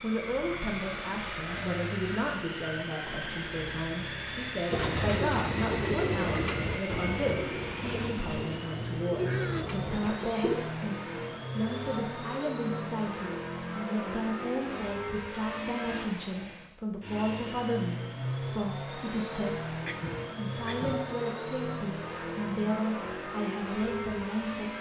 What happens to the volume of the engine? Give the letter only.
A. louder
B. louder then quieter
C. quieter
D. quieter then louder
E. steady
E.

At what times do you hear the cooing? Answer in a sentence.
You can hear the cooing from 4.7 to 10.7 s.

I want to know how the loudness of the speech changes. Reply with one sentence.
The loudness of the speech stays about the same.